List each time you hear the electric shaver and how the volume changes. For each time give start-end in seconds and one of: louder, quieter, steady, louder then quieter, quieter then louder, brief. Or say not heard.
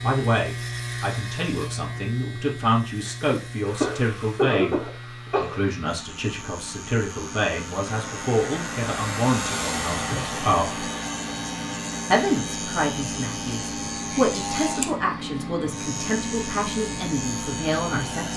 0.0-18.3 quieter then louder.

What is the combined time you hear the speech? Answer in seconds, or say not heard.
17 s.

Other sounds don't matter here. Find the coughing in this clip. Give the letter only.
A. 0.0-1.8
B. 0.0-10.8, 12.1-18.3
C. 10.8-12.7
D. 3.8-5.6
D.